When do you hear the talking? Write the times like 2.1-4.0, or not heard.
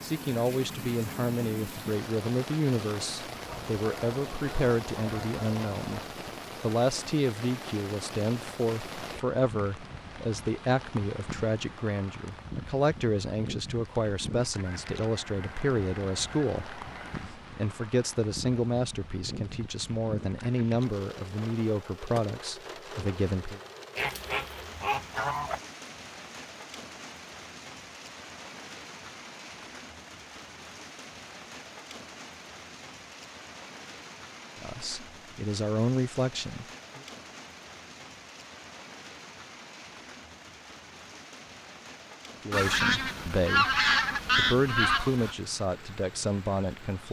0.0-6.0, 6.6-23.6, 34.5-37.0, 42.5-47.0.